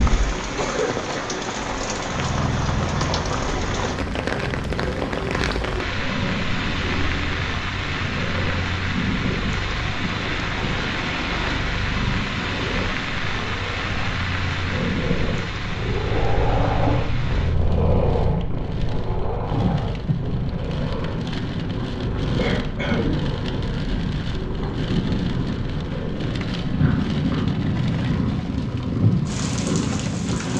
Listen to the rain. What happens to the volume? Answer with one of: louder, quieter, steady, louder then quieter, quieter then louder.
steady.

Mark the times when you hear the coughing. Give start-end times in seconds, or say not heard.
22.4-23.1.